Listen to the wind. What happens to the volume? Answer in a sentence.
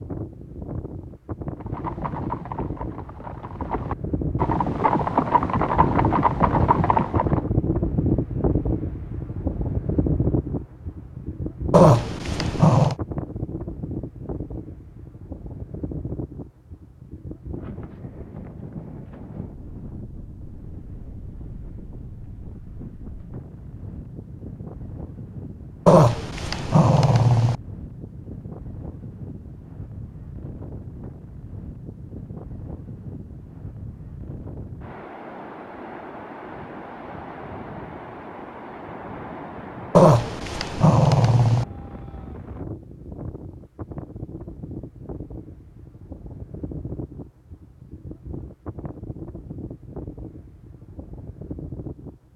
The volume of the wind goes down.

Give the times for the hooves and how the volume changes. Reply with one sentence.
The hooves can be heard from 1.6 to 7.5 s, getting louder.